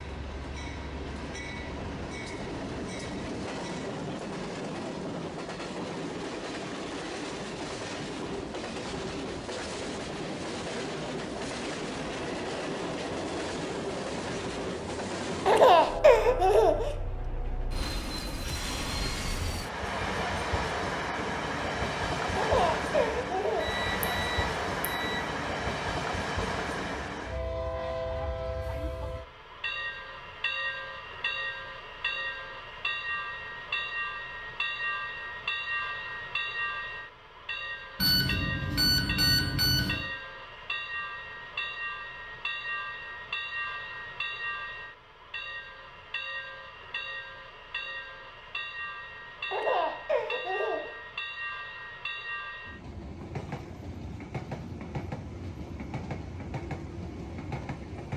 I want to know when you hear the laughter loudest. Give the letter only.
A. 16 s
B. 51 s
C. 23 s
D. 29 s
A.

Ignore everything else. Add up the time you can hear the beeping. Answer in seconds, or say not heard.
4 s.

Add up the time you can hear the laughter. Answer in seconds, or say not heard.
4 s.